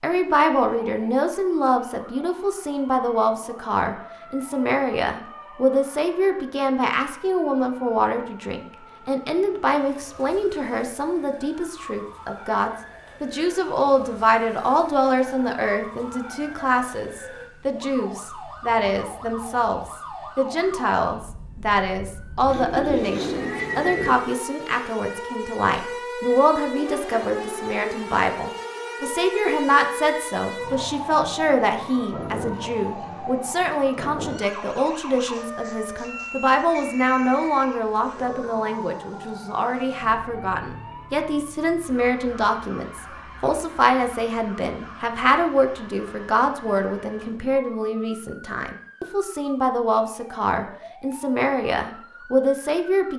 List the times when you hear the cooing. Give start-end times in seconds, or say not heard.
22.4-24.2.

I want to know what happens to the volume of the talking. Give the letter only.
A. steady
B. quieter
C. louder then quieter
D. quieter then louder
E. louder
A.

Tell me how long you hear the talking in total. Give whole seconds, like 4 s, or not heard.
53 s.